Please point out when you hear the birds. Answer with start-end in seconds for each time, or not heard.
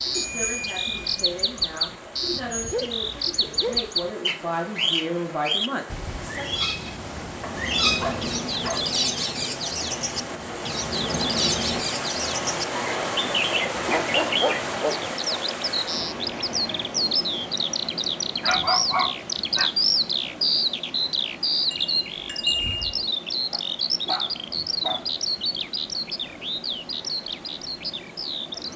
0.0-28.7.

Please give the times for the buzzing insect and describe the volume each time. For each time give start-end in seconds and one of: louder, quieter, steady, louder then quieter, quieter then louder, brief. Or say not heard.
7.5-11.8 quieter then louder.